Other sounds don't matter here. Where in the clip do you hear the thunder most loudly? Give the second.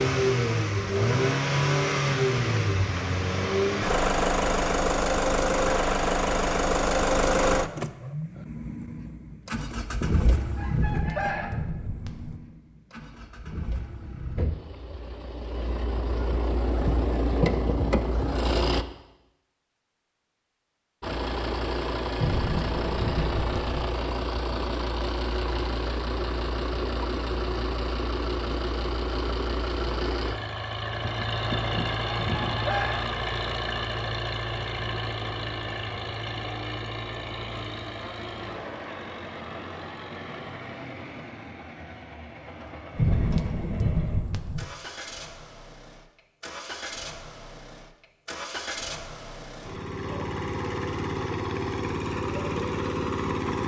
43 s.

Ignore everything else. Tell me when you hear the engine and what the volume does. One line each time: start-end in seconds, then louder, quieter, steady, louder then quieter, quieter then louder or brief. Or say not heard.
0.0-18.9 quieter then louder
21.0-53.6 quieter then louder.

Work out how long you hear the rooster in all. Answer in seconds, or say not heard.
4 s.